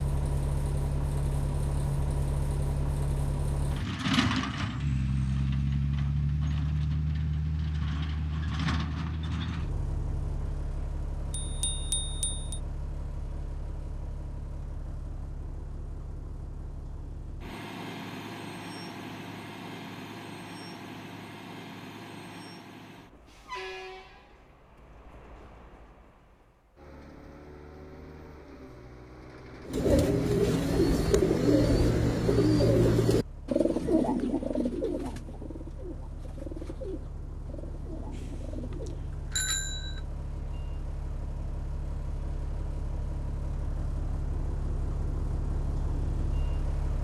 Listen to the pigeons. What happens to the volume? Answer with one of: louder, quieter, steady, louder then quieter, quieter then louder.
quieter.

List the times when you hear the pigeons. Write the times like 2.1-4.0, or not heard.
29.6-39.0.